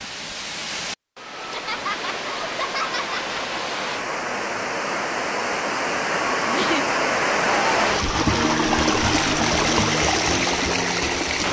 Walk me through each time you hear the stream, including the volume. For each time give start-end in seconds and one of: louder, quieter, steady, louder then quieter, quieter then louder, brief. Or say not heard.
0.0-11.4 louder.